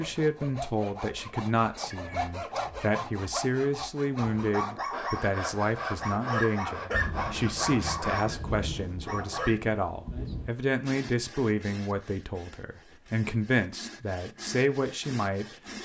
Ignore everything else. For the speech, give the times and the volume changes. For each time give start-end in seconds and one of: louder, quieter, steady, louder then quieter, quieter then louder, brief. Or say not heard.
0.0-15.8 steady.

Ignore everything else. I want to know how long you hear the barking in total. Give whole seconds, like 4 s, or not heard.
5 s.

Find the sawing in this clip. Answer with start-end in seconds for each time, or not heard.
0.0-8.2, 10.8-15.8.